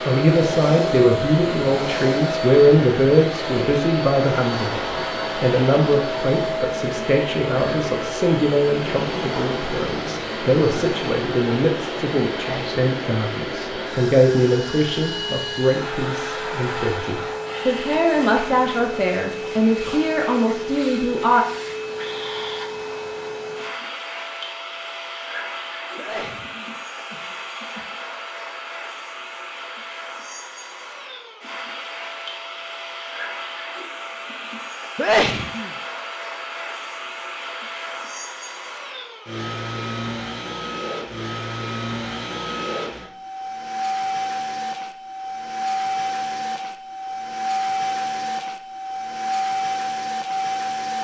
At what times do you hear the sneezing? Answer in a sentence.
The sneezing can be heard from 12.3 to 12.8 s, from 25.9 to 27.8 s and from 35.0 to 35.7 s.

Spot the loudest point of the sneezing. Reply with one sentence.
The loudest moment of the sneezing is at 35 seconds.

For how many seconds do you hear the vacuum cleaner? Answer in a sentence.
You can hear the vacuum cleaner for 51 seconds altogether.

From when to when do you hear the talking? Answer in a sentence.
You can hear the talking from 0.1 to 21.4 s.